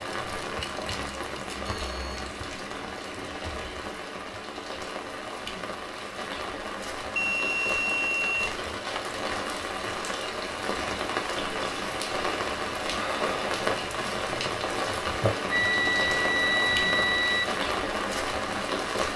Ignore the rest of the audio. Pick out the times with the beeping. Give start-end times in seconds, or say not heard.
1.8-2.2, 7.2-9.1, 15.5-17.4.